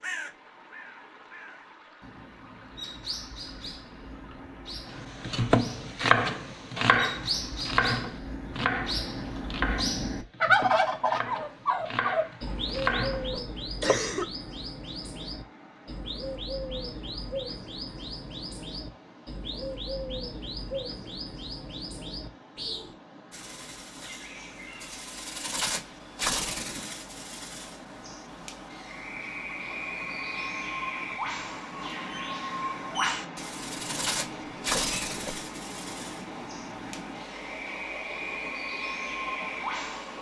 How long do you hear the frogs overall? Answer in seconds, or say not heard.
not heard.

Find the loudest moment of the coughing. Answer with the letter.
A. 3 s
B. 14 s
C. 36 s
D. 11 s
B.